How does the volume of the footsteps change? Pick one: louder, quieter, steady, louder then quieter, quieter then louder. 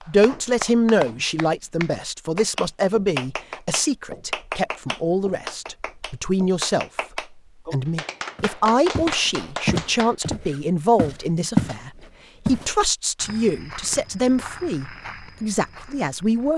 louder then quieter.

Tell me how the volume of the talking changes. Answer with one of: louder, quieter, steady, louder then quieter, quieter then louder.
steady.